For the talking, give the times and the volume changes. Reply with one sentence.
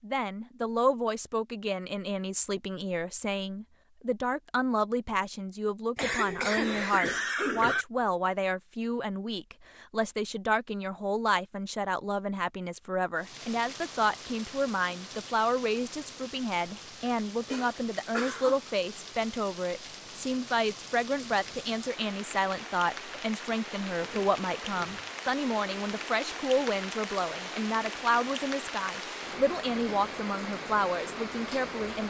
You can hear the talking from 0.0 to 32.0 s, at a steady volume.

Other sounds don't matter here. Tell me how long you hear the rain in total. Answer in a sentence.
You can hear the rain for 19 seconds altogether.